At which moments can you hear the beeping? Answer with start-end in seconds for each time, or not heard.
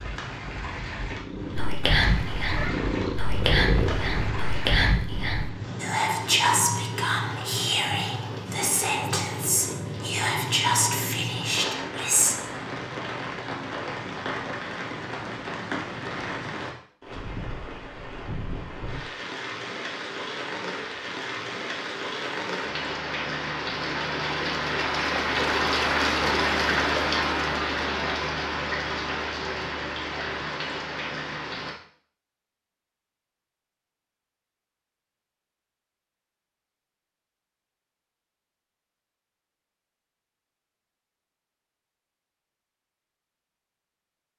not heard.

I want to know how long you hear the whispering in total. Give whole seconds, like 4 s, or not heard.
11 s.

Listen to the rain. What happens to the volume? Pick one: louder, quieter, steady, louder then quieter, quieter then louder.
louder.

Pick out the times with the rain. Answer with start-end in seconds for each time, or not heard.
0.0-31.8.